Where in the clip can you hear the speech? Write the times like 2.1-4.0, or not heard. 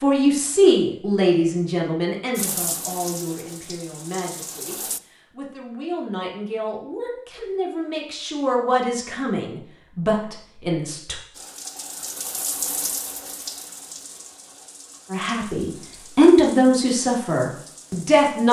0.0-11.2, 15.1-18.4.